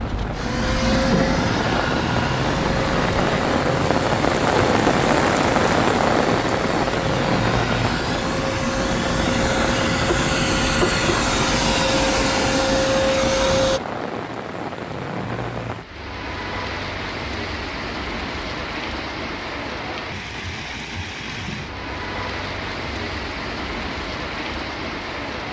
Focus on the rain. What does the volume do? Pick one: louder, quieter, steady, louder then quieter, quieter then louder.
quieter.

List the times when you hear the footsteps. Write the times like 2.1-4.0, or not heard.
not heard.